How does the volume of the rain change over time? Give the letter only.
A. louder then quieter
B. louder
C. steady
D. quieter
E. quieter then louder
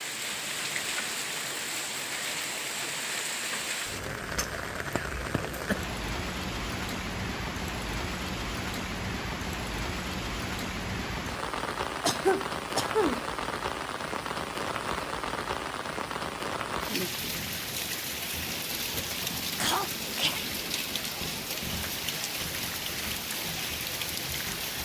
C.